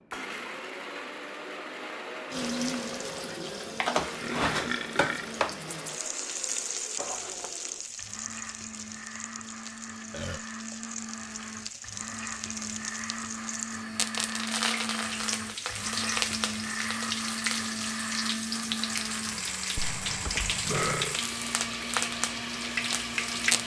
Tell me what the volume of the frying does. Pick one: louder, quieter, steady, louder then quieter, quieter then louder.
quieter then louder.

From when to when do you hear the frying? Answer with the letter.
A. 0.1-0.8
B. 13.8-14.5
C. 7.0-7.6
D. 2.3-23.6
D.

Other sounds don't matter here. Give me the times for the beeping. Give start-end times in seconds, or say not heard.
7.0-7.6.